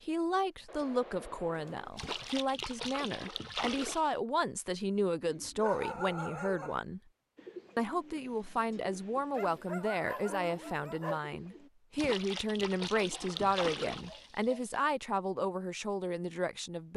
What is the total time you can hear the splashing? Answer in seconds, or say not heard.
5 s.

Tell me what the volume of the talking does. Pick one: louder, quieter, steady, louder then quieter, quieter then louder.
steady.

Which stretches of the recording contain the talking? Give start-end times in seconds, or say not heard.
0.0-7.0, 7.8-16.9.